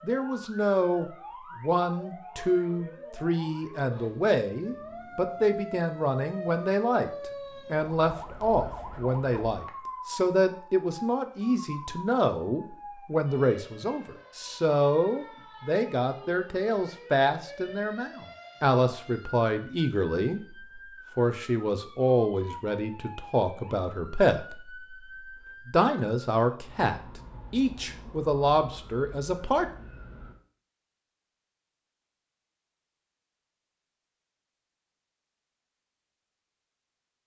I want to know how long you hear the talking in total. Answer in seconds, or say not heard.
29 s.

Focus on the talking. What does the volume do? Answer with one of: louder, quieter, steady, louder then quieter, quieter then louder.
steady.